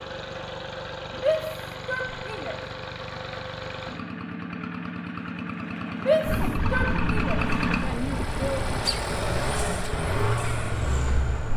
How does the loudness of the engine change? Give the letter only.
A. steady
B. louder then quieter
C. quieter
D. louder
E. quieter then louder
D.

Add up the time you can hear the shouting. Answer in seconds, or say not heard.
4 s.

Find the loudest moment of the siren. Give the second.
7 s.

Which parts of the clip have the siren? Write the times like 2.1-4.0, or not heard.
6.2-11.5.